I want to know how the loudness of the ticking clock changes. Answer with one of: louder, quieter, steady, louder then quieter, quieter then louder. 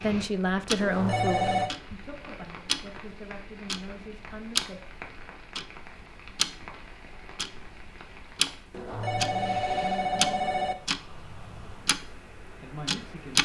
louder then quieter.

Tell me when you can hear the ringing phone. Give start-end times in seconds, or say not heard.
0.8-1.7, 8.7-10.8.